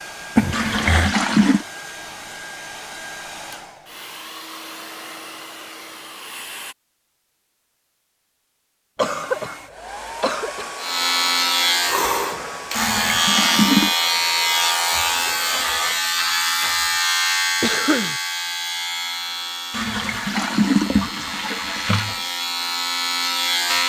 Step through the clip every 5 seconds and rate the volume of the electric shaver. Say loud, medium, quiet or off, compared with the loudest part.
off, off, loud, loud, medium.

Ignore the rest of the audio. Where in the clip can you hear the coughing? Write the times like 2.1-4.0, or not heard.
0.3-1.1, 8.9-9.6, 10.2-10.7, 17.6-18.1.